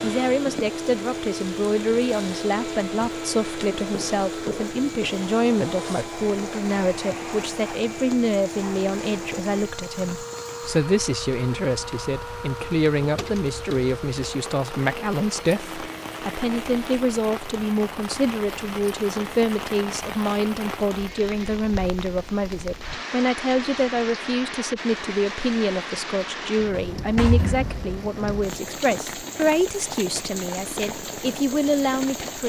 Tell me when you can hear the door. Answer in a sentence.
The door can be heard from 13.0 to 13.8 s and from 26.7 to 27.8 s.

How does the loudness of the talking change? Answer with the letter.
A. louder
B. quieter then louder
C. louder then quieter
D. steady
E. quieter
D.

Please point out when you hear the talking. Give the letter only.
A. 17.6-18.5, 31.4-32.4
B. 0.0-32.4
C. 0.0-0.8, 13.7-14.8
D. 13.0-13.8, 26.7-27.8
B.